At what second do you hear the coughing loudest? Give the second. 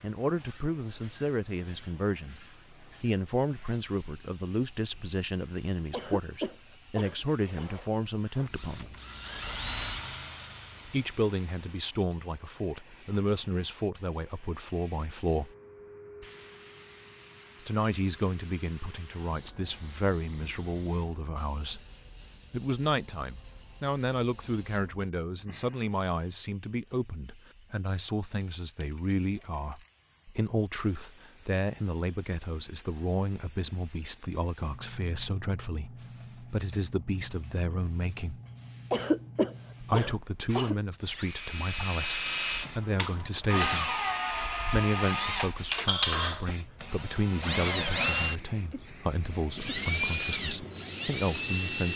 39 s.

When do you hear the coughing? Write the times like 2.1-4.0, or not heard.
5.9-7.7, 38.9-40.8.